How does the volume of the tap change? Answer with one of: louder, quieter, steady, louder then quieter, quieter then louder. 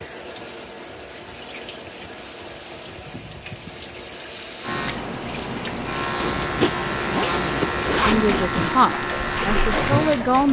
louder.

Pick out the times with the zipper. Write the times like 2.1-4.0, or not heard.
6.2-8.8.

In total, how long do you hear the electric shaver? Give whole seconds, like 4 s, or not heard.
6 s.